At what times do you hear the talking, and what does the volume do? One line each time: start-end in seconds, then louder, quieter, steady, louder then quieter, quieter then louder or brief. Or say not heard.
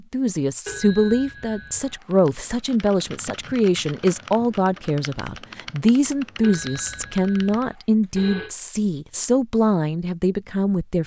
0.1-11.0 steady.